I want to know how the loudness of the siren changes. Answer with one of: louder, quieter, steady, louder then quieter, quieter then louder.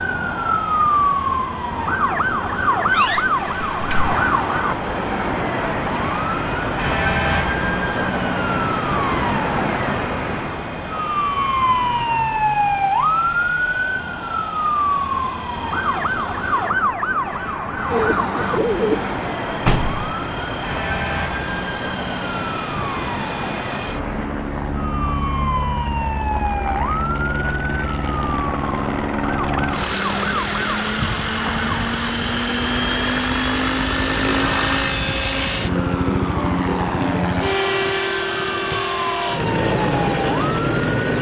quieter.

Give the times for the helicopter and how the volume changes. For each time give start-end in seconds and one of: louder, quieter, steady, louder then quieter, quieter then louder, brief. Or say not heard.
0.0-16.8 steady
18.4-41.1 louder.